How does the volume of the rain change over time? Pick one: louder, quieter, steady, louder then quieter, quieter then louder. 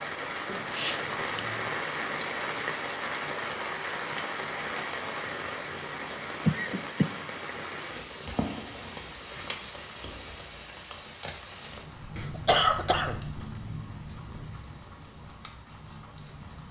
quieter.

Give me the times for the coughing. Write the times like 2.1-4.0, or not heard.
0.5-1.7, 6.5-7.1, 12.2-13.4.